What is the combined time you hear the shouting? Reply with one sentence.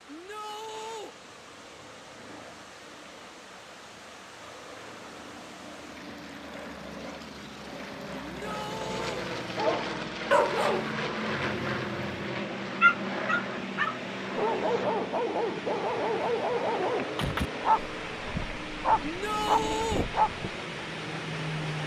The shouting can be heard for 3 seconds in total.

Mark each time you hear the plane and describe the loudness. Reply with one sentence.
The plane can be heard from 0.3 to 21.8 s, getting louder then quieter.